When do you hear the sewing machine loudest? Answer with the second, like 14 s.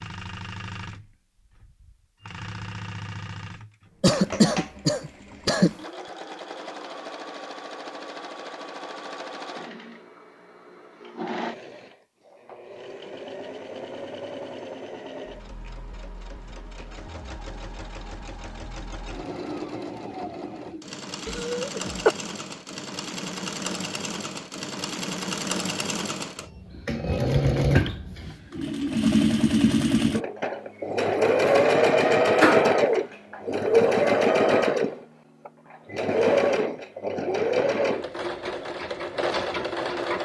32 s.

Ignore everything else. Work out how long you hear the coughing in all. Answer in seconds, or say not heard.
3 s.